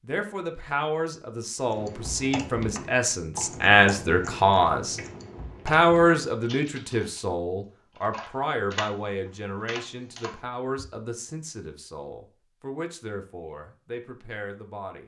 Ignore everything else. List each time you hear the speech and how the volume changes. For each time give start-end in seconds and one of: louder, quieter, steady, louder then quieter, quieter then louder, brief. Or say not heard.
0.0-5.0 louder
5.7-15.0 quieter.